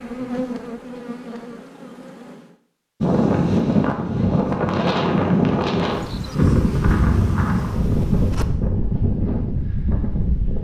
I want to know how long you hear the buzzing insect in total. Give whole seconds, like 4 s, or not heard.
5 s.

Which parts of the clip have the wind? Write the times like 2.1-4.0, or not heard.
3.0-10.5.